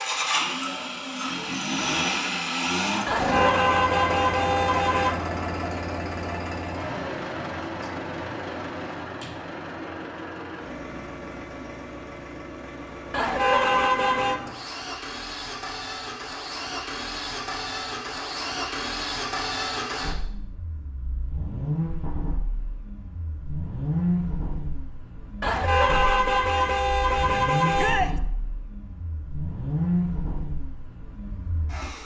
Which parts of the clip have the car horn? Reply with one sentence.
You can hear the car horn from 3.0 to 5.2 s, from 13.1 to 14.4 s and from 25.4 to 28.1 s.